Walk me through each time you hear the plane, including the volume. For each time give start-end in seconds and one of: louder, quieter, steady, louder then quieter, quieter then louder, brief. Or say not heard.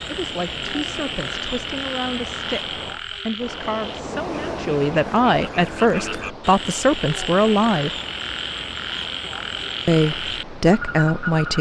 not heard.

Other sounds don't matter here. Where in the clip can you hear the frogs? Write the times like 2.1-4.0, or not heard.
0.0-11.5.